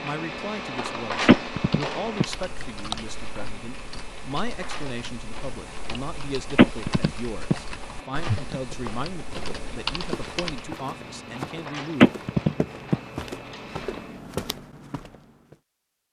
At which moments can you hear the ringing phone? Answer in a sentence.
The ringing phone can be heard from 1.2 to 2.2 s, from 6.5 to 7.5 s and from 12.0 to 12.9 s.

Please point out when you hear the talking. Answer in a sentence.
The talking can be heard from 0.0 to 12.2 s.